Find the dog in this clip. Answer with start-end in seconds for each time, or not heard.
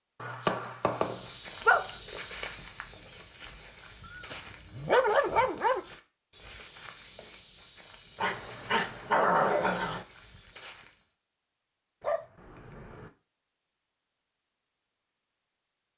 0.2-1.9, 4.2-5.8, 8.2-10.1, 12.0-13.1.